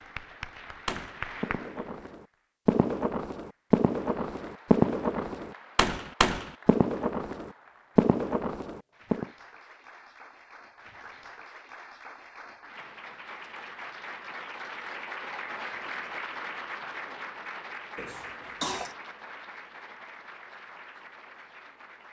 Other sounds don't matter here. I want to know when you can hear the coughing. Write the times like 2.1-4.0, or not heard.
17.9-18.9.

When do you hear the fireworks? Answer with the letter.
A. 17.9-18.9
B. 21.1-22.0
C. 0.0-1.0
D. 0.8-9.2
D.